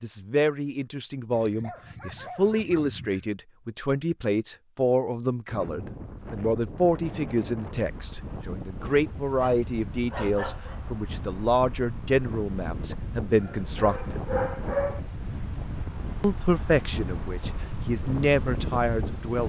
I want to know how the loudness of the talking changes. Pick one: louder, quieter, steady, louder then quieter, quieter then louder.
steady.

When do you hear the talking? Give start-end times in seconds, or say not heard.
0.0-14.2, 16.2-19.4.